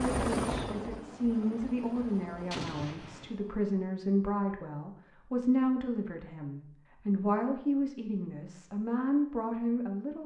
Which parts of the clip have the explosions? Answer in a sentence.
The explosions can be heard from 2.5 to 3.4 s.